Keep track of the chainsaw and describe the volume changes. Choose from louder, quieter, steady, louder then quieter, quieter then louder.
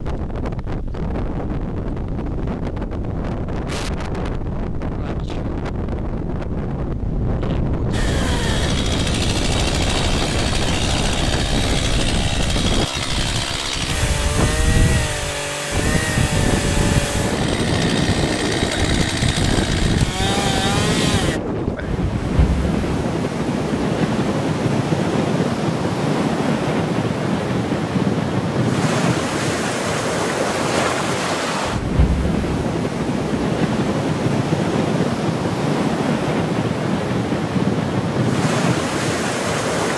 steady.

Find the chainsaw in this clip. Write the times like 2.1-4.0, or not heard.
7.9-21.4.